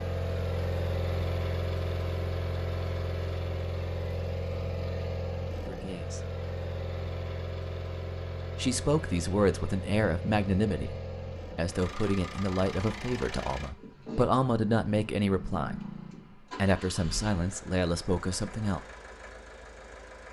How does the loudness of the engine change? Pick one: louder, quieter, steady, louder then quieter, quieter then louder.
quieter.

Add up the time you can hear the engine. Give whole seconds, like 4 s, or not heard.
20 s.